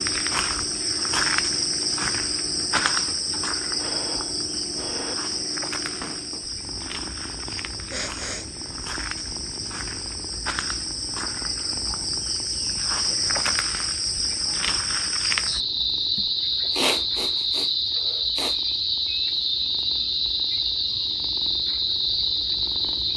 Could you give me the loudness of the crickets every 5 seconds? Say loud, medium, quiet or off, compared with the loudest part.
loud, medium, loud, loud, loud.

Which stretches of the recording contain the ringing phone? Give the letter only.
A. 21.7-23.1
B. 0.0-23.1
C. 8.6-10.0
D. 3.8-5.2
D.